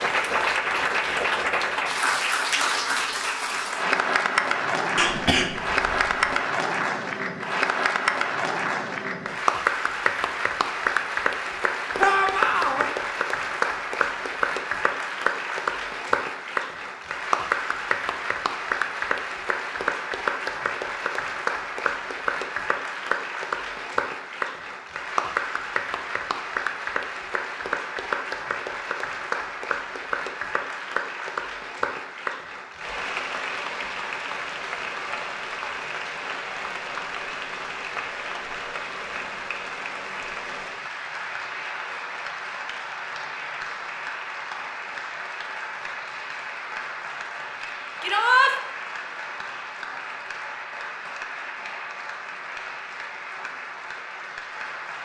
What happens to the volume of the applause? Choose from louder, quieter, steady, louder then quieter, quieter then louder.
quieter.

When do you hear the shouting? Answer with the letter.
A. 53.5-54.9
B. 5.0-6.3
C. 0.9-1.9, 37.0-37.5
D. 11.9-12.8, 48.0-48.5
D.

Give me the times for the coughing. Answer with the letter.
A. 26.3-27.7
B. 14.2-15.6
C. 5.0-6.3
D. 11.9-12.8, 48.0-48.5
C.